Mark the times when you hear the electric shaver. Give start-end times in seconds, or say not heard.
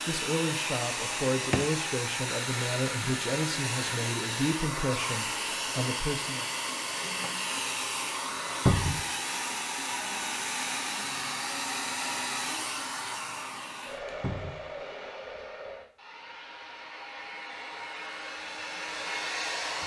not heard.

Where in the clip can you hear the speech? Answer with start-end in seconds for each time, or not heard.
0.1-6.5.